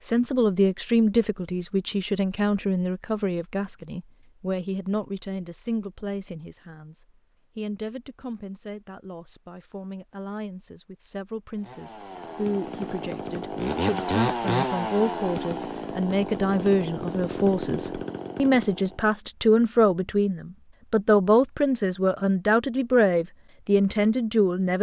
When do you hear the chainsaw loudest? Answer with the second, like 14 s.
14 s.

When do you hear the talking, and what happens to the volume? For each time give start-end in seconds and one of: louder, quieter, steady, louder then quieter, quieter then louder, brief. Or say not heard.
0.1-24.7 quieter then louder.